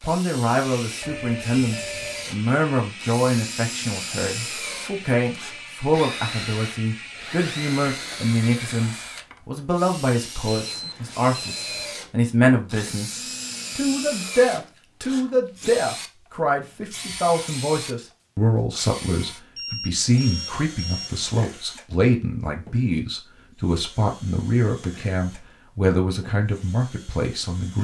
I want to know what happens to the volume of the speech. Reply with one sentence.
The loudness of the speech stays about the same.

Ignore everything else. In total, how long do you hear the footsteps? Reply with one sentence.
The footsteps can't be heard in this clip.